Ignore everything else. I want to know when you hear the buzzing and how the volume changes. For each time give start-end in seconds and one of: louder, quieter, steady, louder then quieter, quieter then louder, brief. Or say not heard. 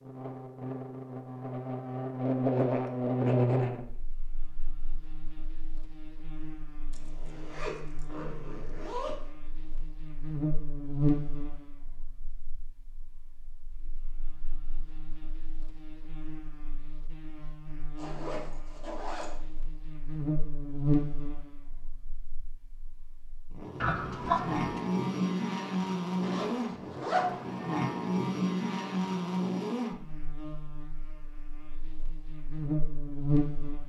0.0-33.8 quieter then louder.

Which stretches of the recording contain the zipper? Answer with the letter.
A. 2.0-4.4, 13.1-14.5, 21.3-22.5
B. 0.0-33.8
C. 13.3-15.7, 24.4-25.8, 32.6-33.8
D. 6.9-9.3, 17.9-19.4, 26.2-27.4
D.